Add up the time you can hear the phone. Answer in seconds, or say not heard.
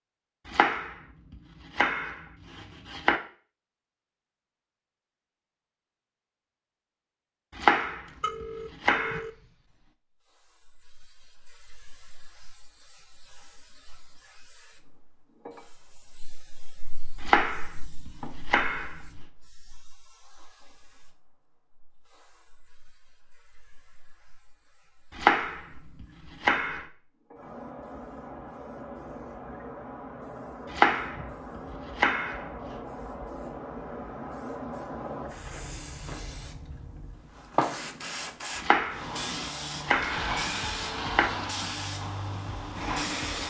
2 s.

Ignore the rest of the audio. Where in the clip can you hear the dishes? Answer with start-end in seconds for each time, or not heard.
not heard.